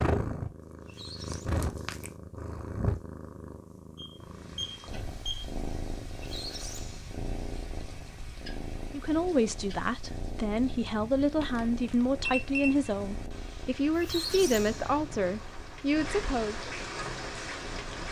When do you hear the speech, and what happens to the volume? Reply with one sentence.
You can hear the speech from 8.9 to 16.7 s, at a steady volume.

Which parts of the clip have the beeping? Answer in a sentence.
The beeping can be heard from 4.0 to 5.5 s and from 11.4 to 12.9 s.